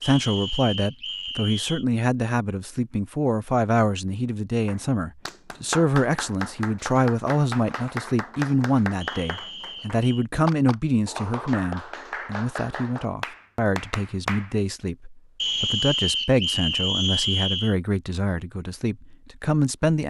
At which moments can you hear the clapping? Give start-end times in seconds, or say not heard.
4.7-14.6.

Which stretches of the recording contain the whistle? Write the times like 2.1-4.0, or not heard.
0.0-1.9, 9.0-10.2, 15.3-17.8.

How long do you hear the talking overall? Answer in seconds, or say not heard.
20 s.